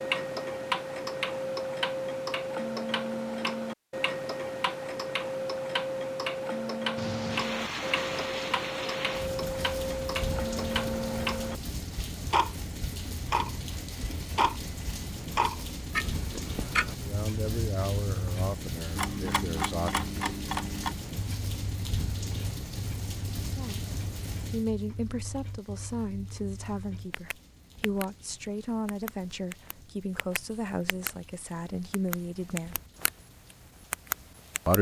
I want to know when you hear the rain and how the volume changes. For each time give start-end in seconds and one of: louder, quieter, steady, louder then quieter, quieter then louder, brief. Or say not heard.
7.0-34.7 quieter.